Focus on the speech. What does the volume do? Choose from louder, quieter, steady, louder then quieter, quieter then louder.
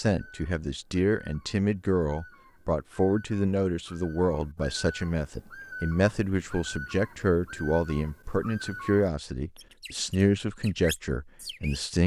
steady.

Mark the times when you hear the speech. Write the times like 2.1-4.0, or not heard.
0.0-12.0.